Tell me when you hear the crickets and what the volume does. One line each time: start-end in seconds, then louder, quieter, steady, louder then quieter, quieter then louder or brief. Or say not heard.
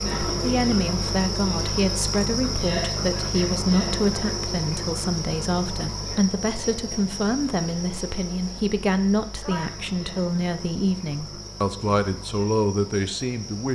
0.0-13.7 quieter.